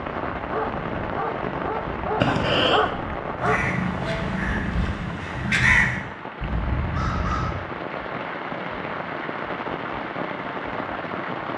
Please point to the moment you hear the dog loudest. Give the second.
3 s.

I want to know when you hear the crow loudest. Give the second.
6 s.